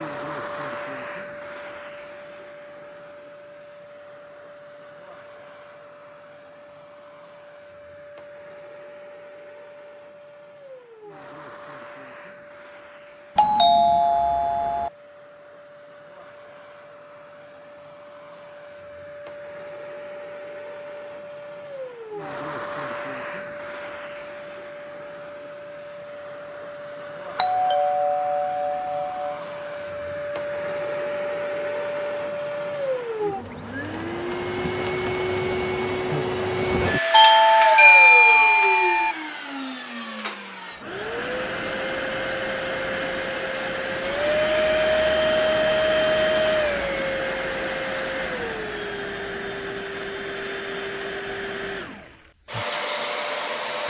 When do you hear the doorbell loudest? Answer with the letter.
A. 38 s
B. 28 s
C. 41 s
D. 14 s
A.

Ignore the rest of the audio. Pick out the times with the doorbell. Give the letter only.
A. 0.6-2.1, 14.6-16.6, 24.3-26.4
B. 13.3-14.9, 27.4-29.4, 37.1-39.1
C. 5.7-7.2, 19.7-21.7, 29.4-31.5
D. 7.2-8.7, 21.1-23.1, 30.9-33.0
B.